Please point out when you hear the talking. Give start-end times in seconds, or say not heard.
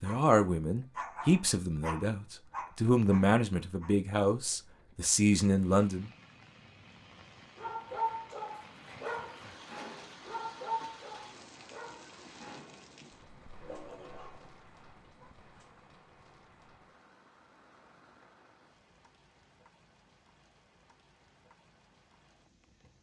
0.0-6.1.